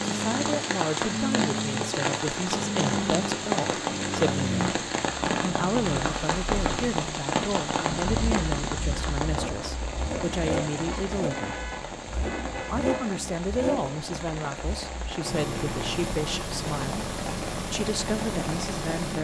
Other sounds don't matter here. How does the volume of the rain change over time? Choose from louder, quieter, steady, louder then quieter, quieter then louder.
quieter.